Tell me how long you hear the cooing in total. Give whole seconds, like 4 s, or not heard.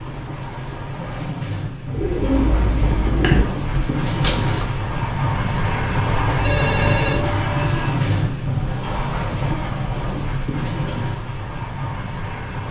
3 s.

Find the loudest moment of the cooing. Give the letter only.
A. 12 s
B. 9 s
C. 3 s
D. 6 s
C.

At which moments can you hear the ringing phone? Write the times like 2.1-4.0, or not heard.
6.4-7.8.